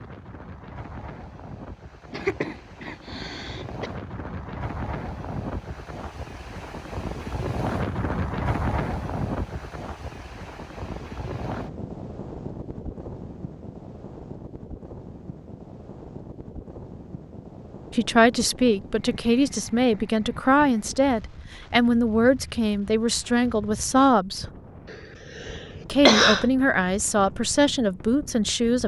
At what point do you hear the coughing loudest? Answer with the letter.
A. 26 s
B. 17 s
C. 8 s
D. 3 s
A.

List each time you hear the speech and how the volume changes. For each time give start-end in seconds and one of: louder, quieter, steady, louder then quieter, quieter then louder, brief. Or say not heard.
17.9-24.4 steady
25.9-28.8 brief.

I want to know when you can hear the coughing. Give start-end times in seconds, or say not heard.
2.1-3.9, 24.9-26.4.